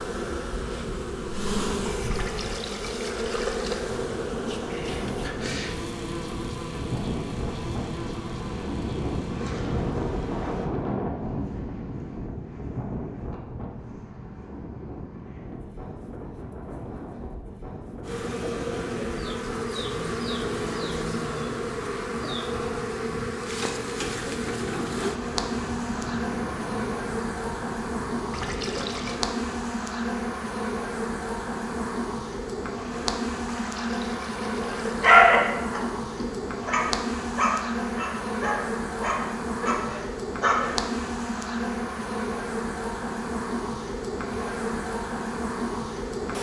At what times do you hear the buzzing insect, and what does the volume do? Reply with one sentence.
You can hear the buzzing insect from 0.0 to 10.7 s, getting quieter; and from 18.0 to 46.3 s, at a steady volume.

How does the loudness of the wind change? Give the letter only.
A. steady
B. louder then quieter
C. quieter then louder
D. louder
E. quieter
B.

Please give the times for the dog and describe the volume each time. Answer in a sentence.
The dog can be heard from 34.5 to 40.8 s, getting quieter.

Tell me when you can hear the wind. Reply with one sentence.
You can hear the wind from 0.0 to 29.2 s.